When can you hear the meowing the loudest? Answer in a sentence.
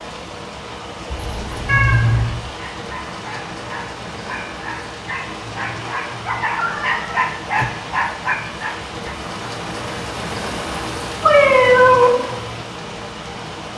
The volume of the meowing peaks at 12 seconds.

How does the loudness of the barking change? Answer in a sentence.
The volume of the barking goes up.